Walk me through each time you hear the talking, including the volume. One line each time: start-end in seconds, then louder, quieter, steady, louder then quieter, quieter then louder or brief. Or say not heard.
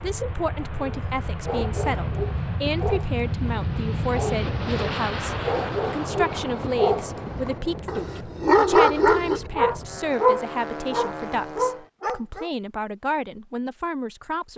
0.0-14.5 steady.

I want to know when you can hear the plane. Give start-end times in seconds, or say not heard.
0.0-11.8.